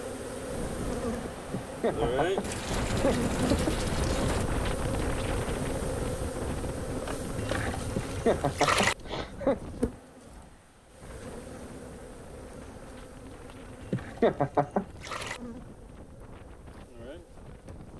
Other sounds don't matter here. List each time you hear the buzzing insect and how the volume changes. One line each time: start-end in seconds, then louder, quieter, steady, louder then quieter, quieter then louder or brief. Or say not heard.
0.0-17.9 quieter.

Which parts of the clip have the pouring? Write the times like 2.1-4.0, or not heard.
2.4-4.5, 7.3-8.9, 13.8-15.4.